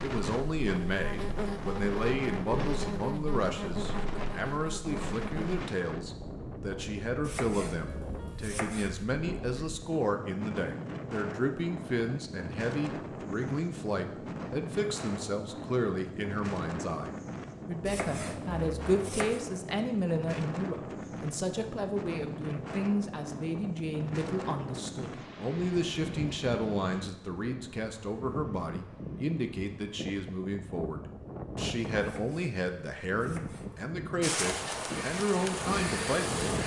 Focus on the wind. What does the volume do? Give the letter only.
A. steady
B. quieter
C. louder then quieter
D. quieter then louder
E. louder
A.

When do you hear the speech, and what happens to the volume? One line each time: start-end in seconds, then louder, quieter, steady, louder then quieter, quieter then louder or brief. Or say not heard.
0.0-36.5 steady.